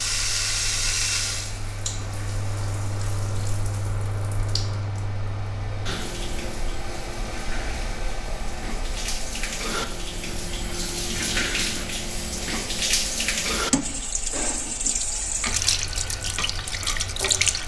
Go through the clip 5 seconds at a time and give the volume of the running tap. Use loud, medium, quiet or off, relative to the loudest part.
loud, medium, loud, loud.